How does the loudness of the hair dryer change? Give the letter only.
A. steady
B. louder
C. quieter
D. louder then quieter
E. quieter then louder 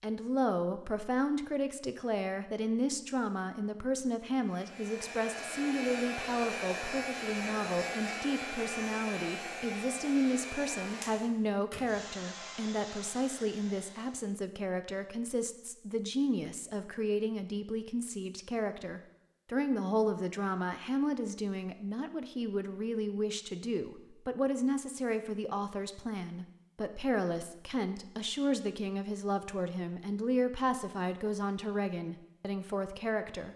C.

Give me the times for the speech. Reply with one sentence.
You can hear the speech from 0.0 to 33.5 s.